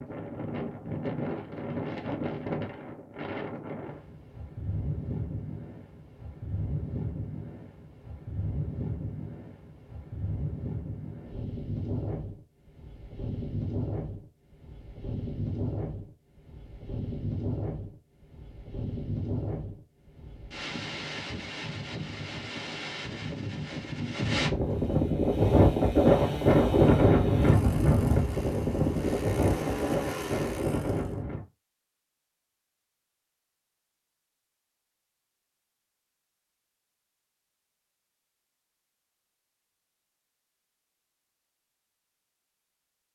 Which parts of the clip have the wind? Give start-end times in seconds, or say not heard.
0.0-31.4.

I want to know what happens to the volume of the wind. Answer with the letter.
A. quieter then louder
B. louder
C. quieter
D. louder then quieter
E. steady
B.